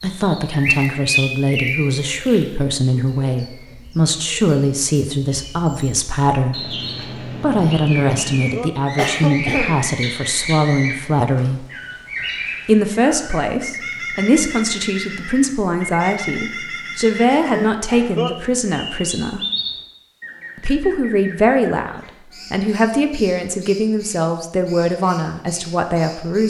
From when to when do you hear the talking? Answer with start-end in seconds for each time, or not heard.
0.0-6.8, 7.4-11.7, 12.7-19.4, 20.6-26.4.